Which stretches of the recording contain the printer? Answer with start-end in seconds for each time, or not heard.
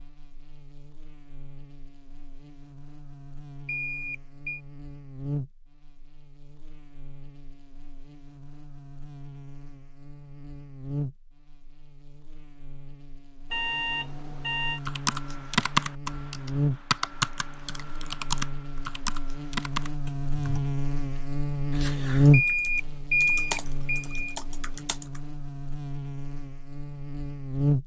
not heard.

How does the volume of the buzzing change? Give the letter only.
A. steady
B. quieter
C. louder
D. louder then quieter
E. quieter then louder
C.